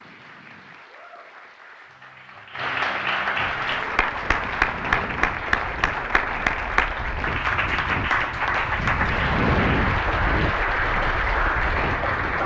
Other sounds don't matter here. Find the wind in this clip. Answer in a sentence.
The wind can be heard from 3.4 to 12.4 s.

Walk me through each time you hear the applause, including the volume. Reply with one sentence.
The applause can be heard from 0.0 to 12.4 s, getting louder.